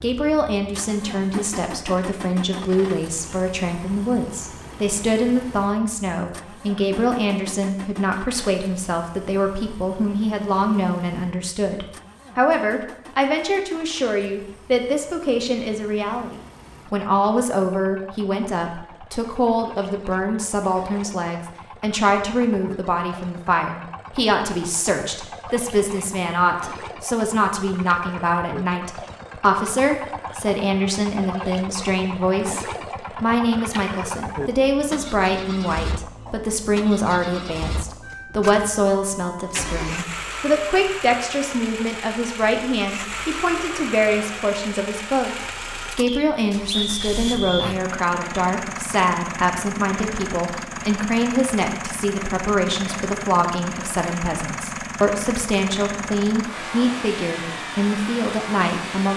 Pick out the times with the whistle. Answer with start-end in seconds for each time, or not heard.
46.0-47.8.